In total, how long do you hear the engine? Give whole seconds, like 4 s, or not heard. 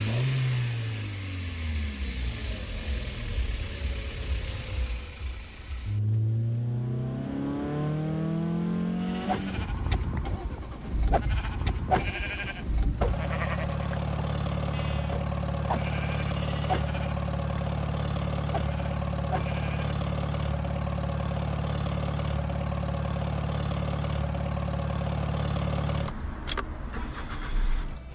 28 s.